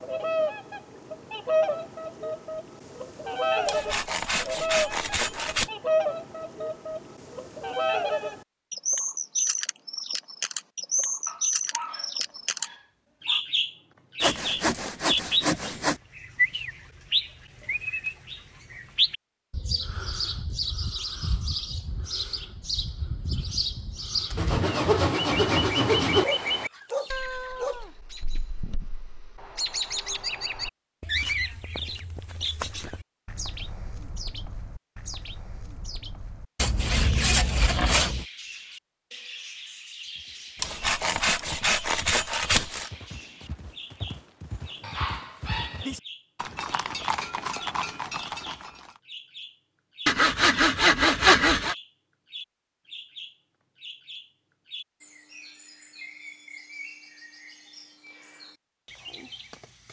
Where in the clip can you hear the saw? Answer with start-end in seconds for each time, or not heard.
3.6-5.7, 14.2-16.0, 24.4-26.2, 36.5-38.2, 40.6-42.9, 50.0-51.8.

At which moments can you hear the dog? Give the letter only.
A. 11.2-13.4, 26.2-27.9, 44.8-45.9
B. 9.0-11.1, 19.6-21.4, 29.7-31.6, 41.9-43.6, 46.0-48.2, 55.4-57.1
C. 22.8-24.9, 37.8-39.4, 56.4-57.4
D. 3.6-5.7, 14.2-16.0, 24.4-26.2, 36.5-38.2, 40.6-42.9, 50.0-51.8
A.